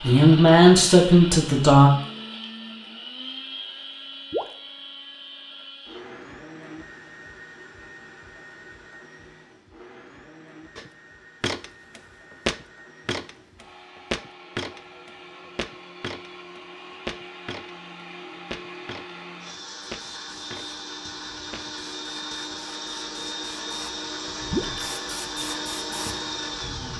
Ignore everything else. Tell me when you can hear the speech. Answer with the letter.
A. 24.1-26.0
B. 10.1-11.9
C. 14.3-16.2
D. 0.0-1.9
D.